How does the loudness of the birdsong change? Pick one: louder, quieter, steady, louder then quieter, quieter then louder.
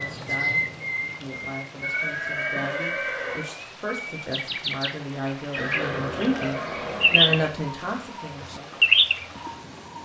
quieter then louder.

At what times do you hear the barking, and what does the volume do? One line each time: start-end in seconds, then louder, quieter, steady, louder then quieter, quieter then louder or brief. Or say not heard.
not heard.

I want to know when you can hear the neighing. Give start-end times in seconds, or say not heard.
1.8-3.5, 5.5-7.5.